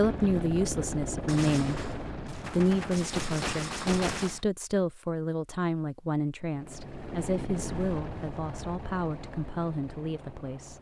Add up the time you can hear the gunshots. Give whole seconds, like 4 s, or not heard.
3 s.